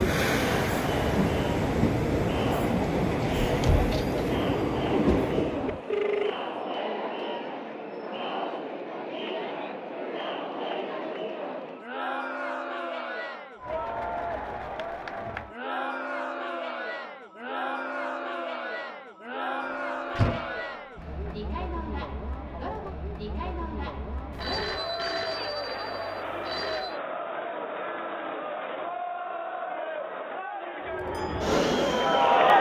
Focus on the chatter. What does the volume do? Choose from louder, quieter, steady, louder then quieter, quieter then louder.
steady.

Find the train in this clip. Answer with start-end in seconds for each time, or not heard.
0.0-5.8, 30.9-32.5.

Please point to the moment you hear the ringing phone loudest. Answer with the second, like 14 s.
6 s.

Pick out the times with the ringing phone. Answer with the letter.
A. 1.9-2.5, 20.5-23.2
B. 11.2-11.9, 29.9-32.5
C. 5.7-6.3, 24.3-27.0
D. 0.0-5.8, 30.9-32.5
C.